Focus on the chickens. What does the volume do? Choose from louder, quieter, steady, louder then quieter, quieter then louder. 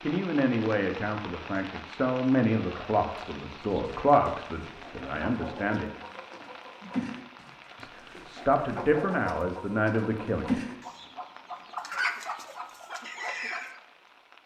louder.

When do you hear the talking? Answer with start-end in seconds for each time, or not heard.
0.0-5.8, 7.8-10.6.